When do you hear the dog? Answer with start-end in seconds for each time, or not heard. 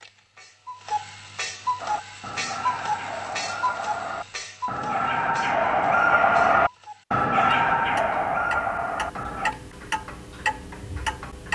1.8-9.6.